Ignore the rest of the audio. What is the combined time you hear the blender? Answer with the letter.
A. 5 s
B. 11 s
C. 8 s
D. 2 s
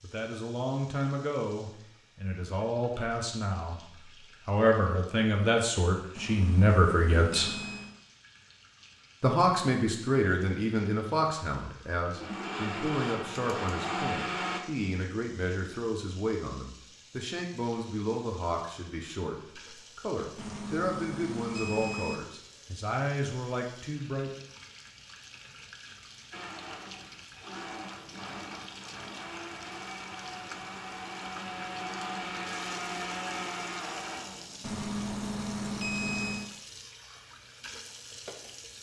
B.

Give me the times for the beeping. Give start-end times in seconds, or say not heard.
6.2-8.0, 20.4-22.2, 34.6-36.5.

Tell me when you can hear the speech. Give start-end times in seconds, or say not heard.
0.0-3.9, 4.5-7.5, 9.2-24.3.